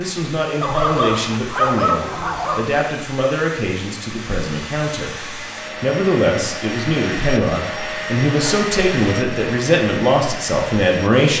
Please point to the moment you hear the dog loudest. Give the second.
2 s.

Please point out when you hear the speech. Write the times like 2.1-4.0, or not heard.
0.0-11.3.